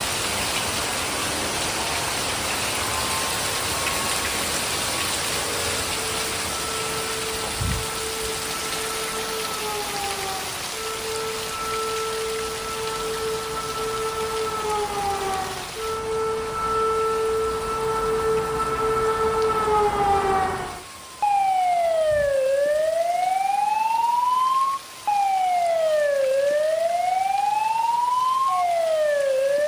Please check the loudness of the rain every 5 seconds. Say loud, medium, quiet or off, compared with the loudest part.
loud, loud, medium, quiet, quiet, quiet.